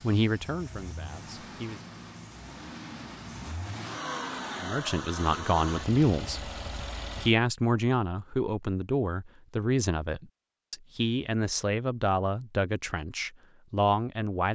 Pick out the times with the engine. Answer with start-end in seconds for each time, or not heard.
0.0-7.3.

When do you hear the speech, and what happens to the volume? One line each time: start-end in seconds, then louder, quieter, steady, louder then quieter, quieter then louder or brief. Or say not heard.
0.0-1.8 brief
4.6-6.5 brief
7.2-14.5 steady.